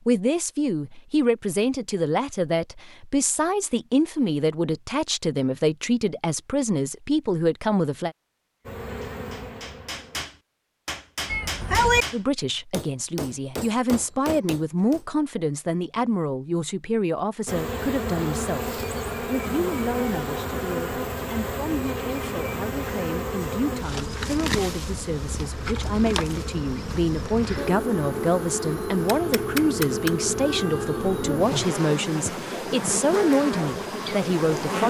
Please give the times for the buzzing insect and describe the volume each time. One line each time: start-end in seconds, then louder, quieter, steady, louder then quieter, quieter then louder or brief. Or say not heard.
8.7-10.2 brief
17.4-34.8 steady.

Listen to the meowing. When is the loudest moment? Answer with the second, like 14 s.
12 s.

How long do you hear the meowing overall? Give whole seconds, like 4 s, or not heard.
3 s.